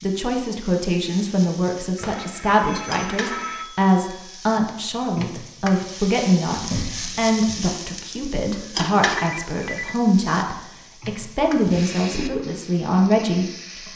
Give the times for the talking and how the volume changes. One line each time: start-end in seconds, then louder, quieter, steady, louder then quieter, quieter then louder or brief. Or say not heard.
0.0-13.9 steady.